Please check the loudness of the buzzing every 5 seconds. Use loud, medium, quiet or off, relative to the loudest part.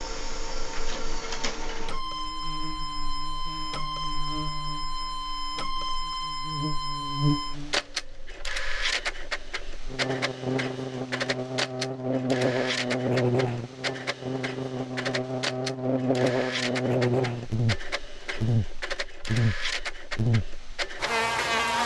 quiet, medium, loud, loud, loud.